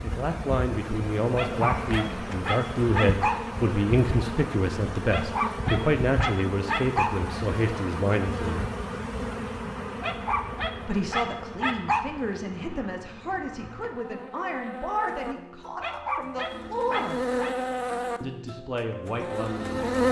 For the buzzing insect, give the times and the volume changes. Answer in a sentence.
You can hear the buzzing insect from 0.0 to 20.0 s, getting quieter then louder.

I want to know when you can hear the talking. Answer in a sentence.
You can hear the talking from 0.0 to 8.7 s, from 10.8 to 17.1 s and from 18.2 to 19.9 s.